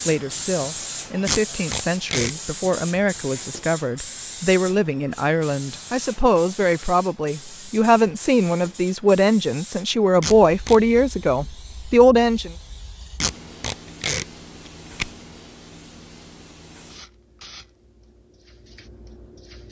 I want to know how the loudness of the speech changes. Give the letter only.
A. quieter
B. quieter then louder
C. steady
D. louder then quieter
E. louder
E.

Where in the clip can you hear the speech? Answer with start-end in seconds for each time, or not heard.
0.0-12.5.